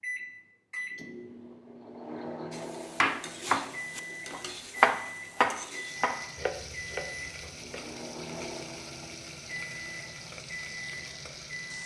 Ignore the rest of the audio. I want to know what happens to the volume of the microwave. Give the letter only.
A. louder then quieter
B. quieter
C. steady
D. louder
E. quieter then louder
C.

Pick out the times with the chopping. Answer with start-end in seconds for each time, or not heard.
3.0-7.7.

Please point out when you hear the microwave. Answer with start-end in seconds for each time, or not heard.
0.0-11.8.